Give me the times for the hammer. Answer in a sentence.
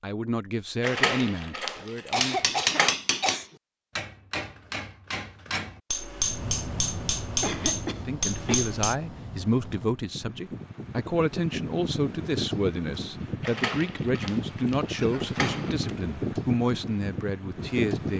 The hammer can be heard from 1.8 to 8.9 s.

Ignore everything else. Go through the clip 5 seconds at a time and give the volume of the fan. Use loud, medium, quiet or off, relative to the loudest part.
off, medium, loud, loud.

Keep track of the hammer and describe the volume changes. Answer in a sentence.
The loudness of the hammer goes down, then up.